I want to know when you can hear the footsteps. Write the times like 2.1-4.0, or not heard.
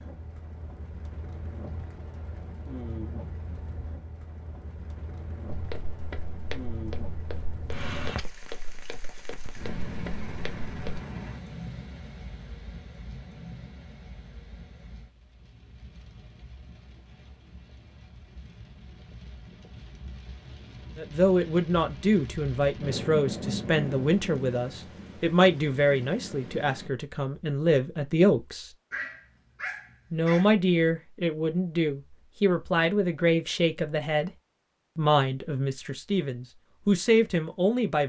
5.5-11.0.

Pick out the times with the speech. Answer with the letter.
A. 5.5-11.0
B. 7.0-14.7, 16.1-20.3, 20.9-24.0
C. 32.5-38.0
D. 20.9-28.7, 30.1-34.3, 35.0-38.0
D.